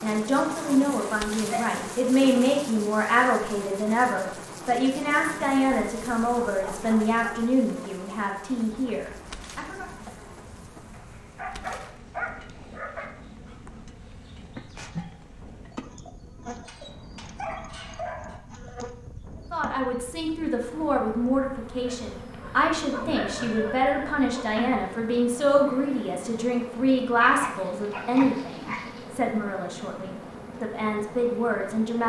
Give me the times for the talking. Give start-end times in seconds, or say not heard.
0.0-9.8, 19.5-32.0.